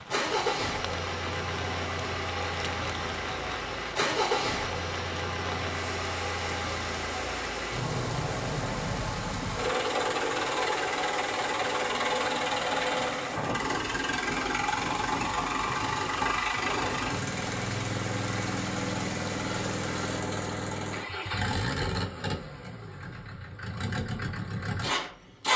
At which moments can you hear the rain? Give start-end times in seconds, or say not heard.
0.0-20.2.